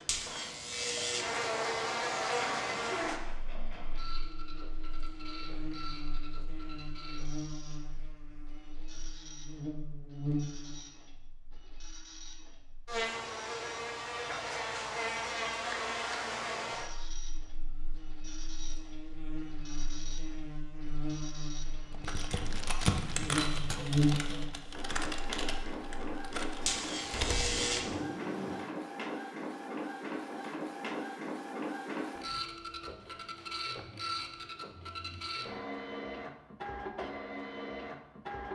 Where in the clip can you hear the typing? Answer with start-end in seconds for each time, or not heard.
21.9-27.7.